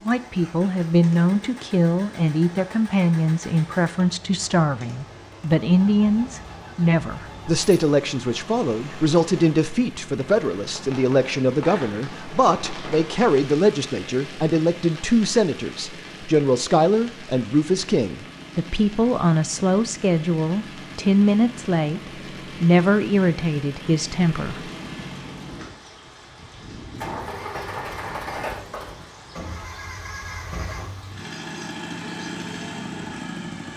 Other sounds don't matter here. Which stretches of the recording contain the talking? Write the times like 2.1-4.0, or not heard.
0.1-24.7.